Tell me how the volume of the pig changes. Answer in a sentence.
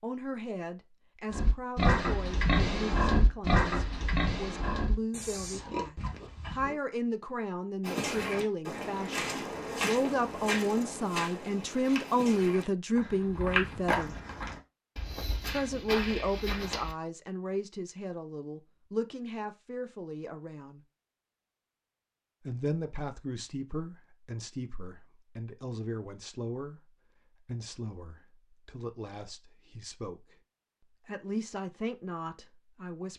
The volume of the pig goes down.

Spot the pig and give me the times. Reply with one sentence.
The pig can be heard from 1.3 to 6.8 s.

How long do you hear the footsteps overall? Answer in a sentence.
The footsteps can be heard for 9 seconds in total.